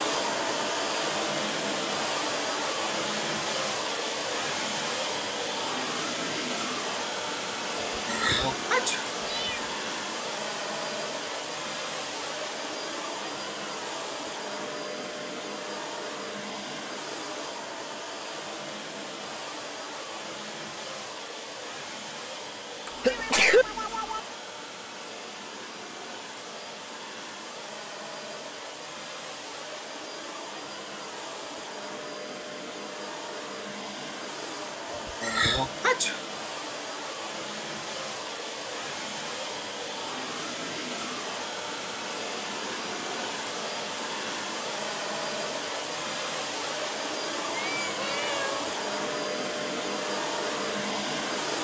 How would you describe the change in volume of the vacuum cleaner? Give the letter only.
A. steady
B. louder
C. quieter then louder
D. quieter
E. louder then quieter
C.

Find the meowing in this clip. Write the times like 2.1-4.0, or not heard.
9.2-9.8, 23.1-24.2, 47.5-48.8.